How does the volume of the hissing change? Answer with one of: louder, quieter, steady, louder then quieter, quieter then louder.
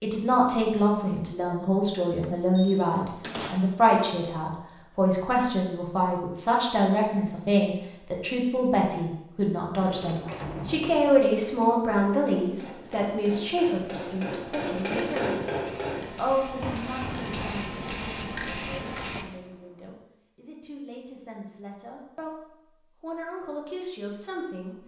louder.